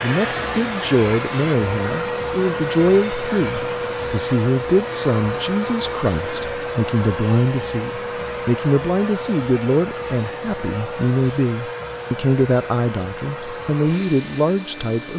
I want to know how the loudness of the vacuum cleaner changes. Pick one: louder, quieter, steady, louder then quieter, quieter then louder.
quieter.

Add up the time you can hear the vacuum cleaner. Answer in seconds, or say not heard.
15 s.